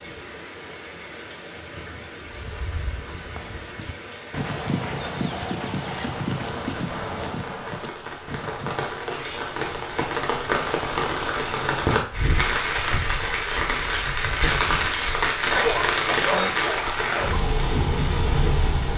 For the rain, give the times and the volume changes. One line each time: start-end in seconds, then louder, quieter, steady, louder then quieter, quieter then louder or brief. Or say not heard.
0.0-18.9 louder.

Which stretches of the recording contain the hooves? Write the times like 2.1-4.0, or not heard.
2.2-8.9.